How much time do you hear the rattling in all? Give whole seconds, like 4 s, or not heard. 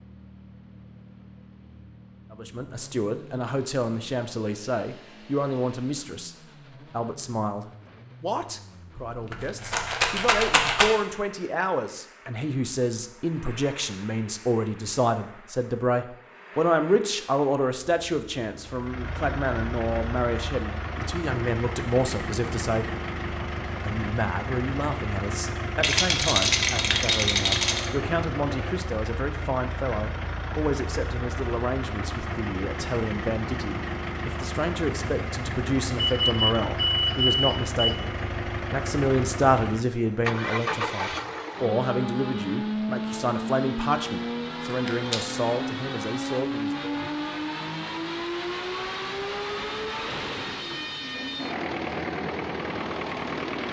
4 s.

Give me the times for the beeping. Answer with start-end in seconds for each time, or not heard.
36.0-38.0.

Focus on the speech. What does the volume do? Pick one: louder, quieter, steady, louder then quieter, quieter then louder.
steady.